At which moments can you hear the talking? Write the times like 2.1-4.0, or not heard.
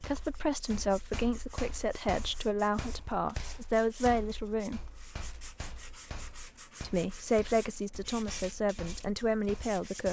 0.0-4.8, 6.8-10.0.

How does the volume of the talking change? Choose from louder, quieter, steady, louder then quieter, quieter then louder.
steady.